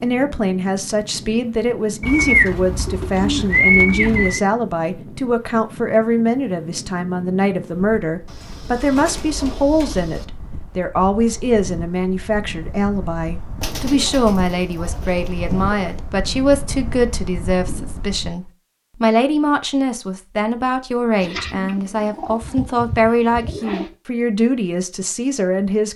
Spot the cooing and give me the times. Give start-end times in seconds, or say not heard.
2.0-4.5, 8.2-10.2, 13.6-16.0, 21.2-23.9.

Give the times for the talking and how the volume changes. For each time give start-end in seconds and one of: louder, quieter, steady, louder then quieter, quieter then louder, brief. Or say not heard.
0.0-25.9 steady.